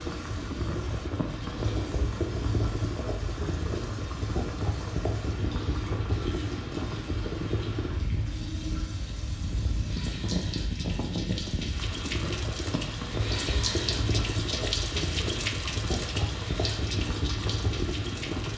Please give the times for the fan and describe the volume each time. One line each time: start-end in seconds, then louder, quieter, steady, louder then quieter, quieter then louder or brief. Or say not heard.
0.0-18.5 steady.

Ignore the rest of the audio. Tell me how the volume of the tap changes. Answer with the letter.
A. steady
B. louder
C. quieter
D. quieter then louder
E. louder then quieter
B.